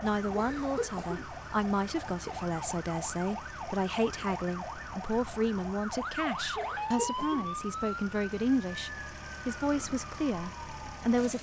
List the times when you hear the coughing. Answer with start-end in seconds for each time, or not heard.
0.3-1.2, 6.5-7.5.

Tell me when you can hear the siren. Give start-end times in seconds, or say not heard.
0.0-11.3.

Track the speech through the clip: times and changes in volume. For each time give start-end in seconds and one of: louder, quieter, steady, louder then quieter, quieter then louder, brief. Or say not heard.
0.0-11.3 steady.